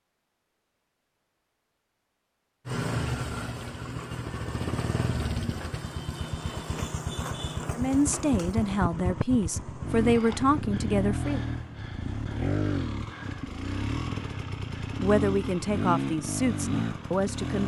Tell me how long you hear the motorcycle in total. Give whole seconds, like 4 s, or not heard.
15 s.